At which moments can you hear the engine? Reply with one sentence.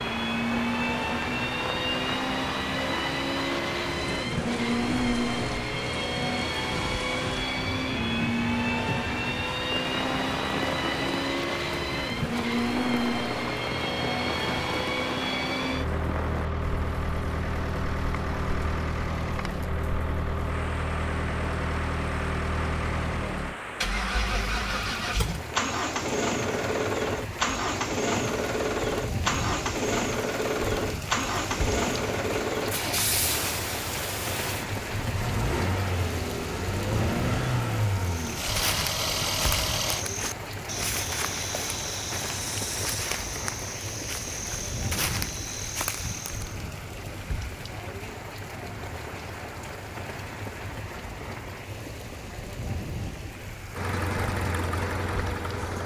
You can hear the engine from 0.0 to 40.0 s and from 53.7 to 55.8 s.